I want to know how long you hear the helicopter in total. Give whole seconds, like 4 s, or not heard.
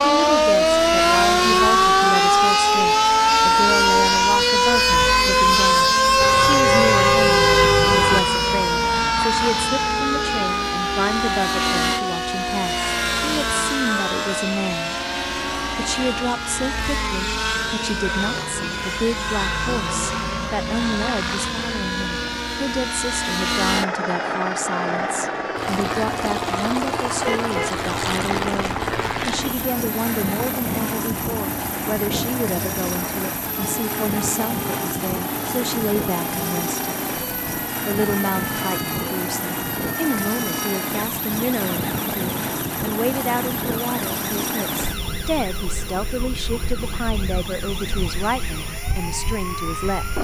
50 s.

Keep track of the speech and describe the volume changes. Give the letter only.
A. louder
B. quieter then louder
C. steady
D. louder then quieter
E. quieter
C.